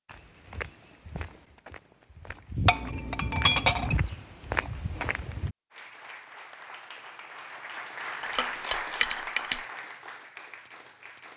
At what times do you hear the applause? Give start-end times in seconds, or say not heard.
5.7-11.3.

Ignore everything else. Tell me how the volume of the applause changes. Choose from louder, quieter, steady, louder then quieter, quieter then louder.
louder then quieter.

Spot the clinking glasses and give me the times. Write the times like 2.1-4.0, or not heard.
2.6-4.0, 8.2-9.6.